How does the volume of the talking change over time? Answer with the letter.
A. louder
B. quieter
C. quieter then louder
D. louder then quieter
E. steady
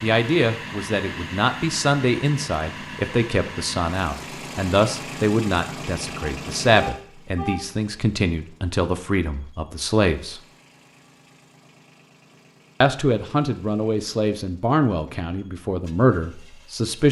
E.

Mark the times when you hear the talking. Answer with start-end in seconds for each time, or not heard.
0.0-10.4, 12.8-17.0.